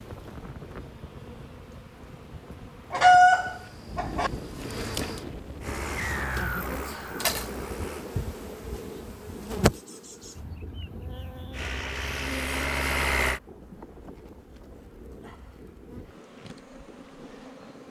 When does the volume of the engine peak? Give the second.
13 s.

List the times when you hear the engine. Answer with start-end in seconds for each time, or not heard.
5.6-8.1, 11.5-13.4.